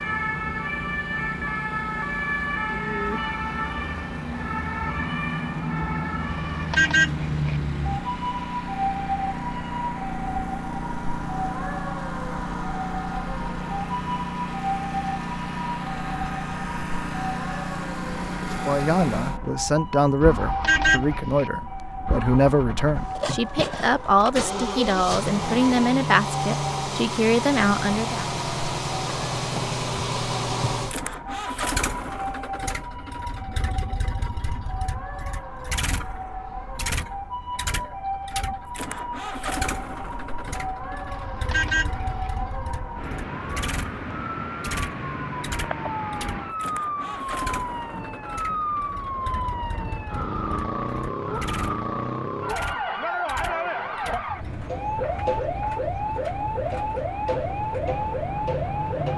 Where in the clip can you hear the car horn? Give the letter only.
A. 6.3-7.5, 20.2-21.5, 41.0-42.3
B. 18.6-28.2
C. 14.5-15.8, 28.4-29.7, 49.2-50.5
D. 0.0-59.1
A.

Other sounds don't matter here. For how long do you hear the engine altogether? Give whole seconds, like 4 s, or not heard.
59 s.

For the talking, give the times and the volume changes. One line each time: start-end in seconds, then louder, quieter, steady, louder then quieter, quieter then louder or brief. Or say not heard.
18.6-28.2 steady.